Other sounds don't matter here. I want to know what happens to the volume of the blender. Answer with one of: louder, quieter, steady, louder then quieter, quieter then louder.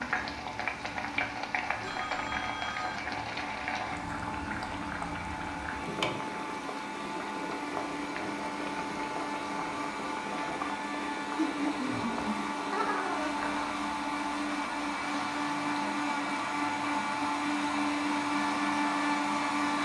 louder.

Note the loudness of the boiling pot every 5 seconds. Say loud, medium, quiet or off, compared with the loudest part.
loud, loud, medium, medium.